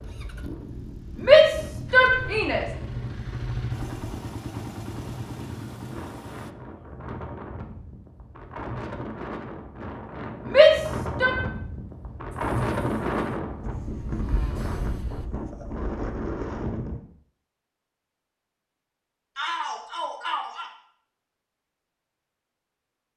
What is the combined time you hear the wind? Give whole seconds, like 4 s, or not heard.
17 s.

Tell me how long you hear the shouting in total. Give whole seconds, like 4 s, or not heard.
4 s.